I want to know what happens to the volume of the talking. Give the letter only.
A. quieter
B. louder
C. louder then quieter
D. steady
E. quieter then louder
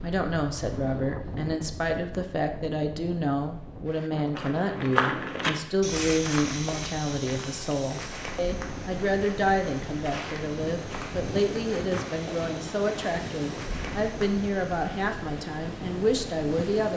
D.